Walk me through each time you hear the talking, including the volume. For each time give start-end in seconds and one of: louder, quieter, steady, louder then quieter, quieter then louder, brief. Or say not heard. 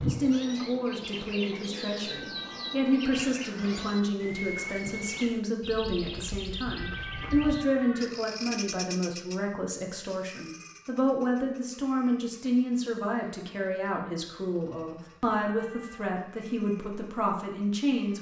0.1-18.1 steady.